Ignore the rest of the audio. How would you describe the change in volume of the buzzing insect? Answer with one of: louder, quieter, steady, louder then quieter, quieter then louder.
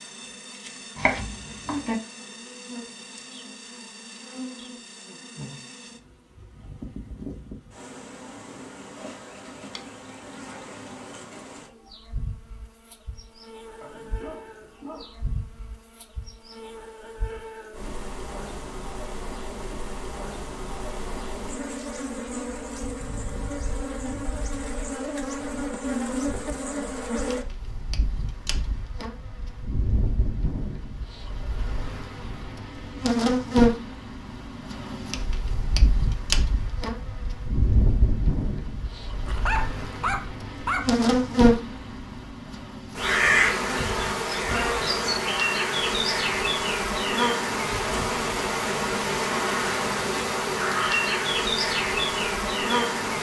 louder.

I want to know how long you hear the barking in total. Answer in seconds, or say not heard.
3 s.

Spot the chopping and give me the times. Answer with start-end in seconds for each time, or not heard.
0.9-1.9.